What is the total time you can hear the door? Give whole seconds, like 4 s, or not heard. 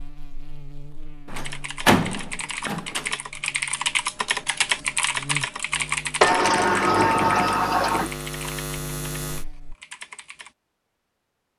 4 s.